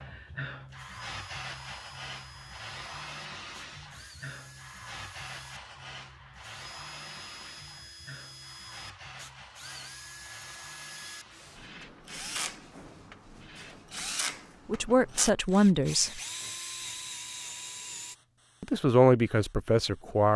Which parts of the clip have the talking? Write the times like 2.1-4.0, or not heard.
14.7-16.2, 18.6-20.3.